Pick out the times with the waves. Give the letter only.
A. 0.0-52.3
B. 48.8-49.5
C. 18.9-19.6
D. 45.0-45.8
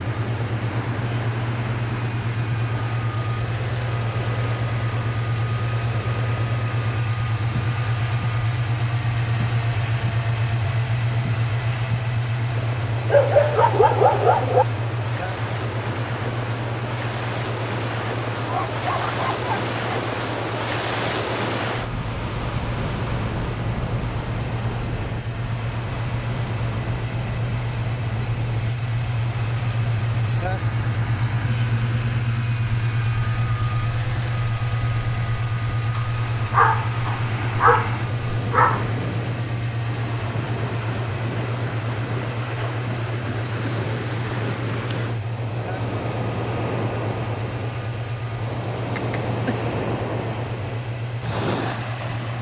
A.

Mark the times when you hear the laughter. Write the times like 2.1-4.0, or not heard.
48.8-49.5.